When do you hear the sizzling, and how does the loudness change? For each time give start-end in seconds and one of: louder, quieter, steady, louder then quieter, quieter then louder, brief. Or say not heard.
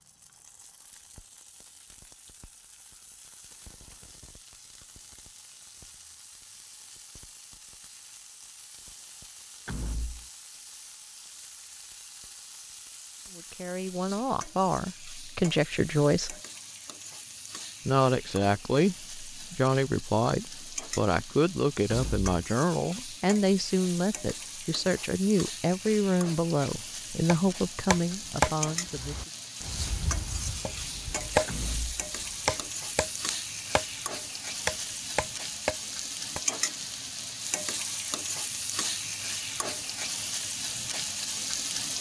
0.0-41.9 louder.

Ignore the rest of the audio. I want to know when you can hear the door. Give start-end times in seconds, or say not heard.
9.7-10.2, 21.9-22.3, 31.4-32.0.